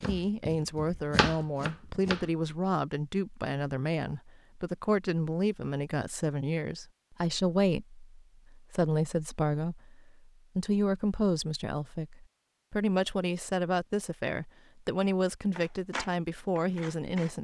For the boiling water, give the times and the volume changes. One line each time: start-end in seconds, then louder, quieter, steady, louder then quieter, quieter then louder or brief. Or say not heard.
not heard.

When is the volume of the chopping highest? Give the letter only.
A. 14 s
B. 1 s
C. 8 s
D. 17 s
B.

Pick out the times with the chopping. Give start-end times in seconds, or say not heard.
0.0-2.3, 15.5-17.3.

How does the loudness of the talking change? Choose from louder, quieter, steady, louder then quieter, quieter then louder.
steady.